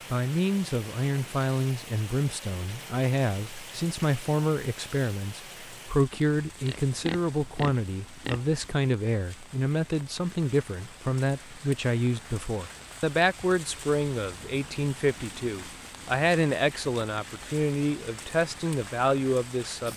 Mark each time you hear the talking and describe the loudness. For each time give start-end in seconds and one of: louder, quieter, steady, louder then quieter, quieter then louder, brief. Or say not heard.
0.1-19.9 steady.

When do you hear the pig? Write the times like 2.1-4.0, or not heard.
6.7-8.4.